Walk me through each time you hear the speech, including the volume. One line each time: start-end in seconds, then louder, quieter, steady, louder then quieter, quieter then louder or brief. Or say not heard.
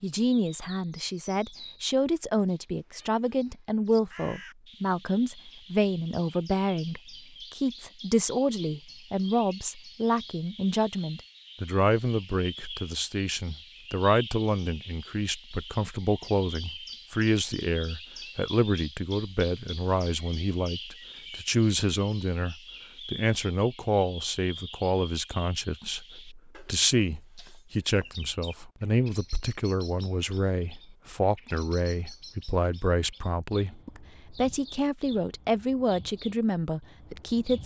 0.0-37.6 steady.